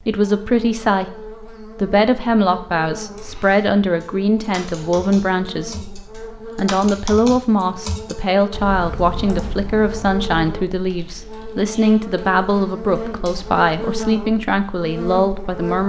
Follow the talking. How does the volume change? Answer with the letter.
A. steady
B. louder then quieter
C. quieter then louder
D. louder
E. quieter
A.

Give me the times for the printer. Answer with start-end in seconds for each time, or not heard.
not heard.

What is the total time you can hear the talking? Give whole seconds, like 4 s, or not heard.
16 s.